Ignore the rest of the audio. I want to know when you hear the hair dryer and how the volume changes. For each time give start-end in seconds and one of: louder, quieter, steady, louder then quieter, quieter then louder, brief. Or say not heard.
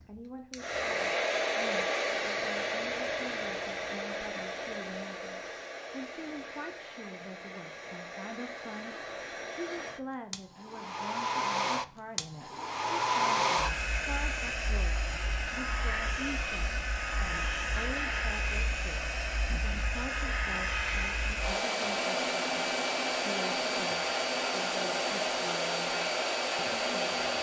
0.0-27.3 quieter then louder.